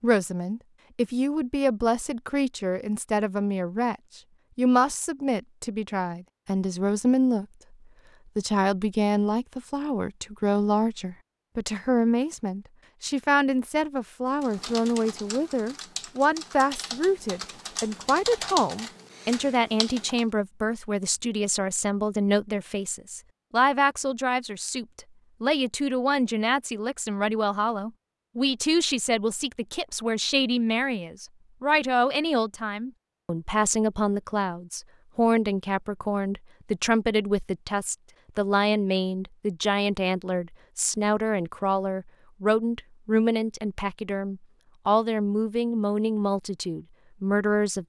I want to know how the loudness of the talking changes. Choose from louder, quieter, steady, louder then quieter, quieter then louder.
steady.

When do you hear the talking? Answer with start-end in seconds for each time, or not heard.
0.0-7.5, 8.3-47.8.